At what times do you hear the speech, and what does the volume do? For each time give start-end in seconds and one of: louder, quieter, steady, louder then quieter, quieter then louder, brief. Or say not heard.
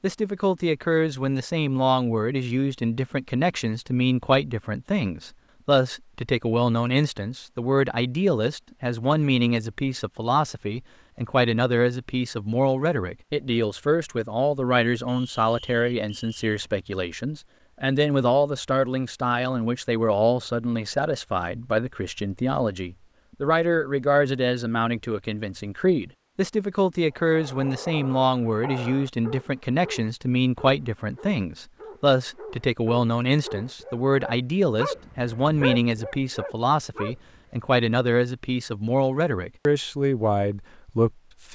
0.0-41.4 steady.